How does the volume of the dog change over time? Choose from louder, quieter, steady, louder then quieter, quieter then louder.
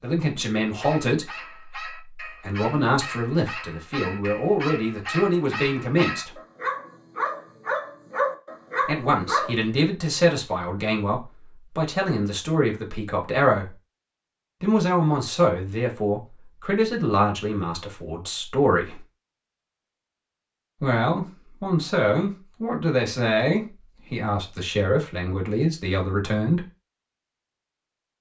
louder.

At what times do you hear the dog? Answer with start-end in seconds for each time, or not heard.
0.7-9.6.